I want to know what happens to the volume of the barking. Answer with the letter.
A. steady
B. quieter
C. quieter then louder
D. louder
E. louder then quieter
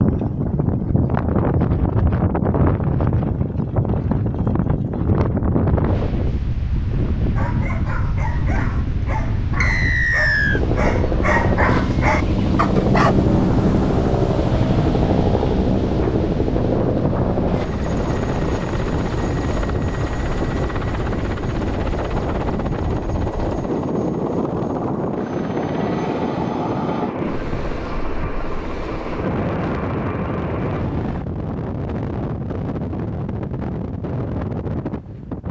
D.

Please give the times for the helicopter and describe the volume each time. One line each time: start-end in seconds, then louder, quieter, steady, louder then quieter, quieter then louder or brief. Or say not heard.
10.5-31.2 quieter.